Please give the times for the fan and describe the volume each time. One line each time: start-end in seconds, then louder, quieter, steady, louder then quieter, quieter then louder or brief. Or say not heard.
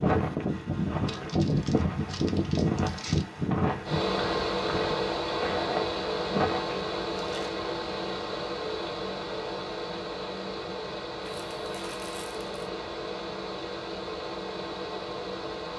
0.0-15.7 quieter.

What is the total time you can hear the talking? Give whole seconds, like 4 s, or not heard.
not heard.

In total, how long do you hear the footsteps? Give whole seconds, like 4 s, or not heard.
7 s.